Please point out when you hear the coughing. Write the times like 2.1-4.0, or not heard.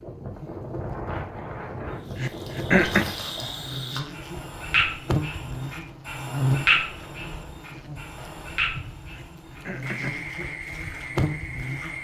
2.1-3.1, 9.1-10.2.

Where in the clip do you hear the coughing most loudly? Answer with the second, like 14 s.
3 s.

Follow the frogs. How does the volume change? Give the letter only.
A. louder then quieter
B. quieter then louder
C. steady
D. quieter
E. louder
A.